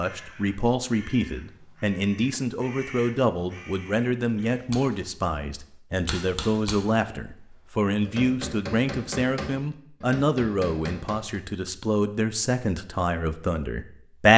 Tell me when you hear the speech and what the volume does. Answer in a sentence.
The speech can be heard from 0.0 to 14.3 s, at a steady volume.